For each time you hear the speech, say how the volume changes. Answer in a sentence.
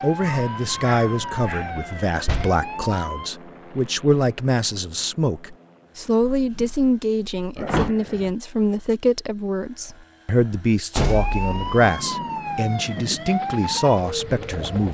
You can hear the speech from 0.0 to 14.9 s, at a steady volume.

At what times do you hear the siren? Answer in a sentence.
The siren can be heard from 0.0 to 3.3 s and from 10.9 to 14.9 s.